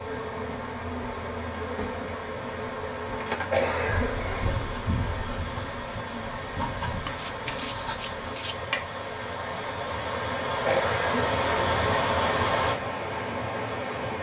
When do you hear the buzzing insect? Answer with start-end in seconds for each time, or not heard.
0.0-8.4.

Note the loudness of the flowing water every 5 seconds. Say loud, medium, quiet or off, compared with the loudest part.
medium, medium, loud.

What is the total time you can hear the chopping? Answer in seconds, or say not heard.
2 s.